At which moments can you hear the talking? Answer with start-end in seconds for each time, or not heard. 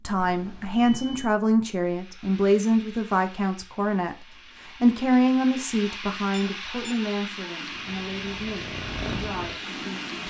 0.0-10.2.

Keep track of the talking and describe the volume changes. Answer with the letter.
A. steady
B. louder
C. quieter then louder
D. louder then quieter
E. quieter
E.